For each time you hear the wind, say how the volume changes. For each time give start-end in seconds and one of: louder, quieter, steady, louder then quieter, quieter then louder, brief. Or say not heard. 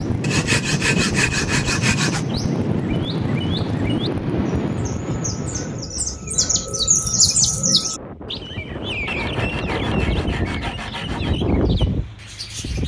0.0-12.8 quieter then louder.